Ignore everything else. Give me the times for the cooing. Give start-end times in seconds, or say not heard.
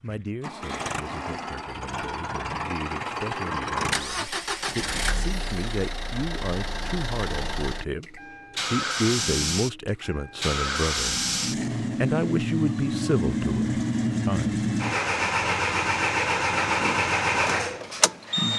not heard.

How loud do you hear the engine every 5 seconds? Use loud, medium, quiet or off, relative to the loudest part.
medium, medium, loud, loud.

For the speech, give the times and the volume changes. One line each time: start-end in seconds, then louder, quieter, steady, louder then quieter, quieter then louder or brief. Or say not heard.
0.0-11.2 louder
12.0-14.7 brief.